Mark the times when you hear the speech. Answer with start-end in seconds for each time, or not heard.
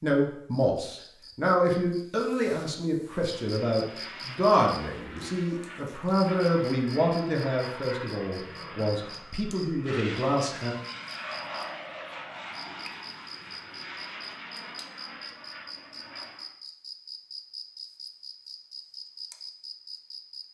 0.0-10.8.